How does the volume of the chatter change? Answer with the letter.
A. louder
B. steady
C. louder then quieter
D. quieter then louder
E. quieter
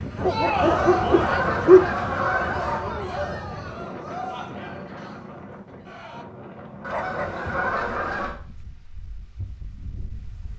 E.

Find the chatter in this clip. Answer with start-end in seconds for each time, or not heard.
0.1-6.2.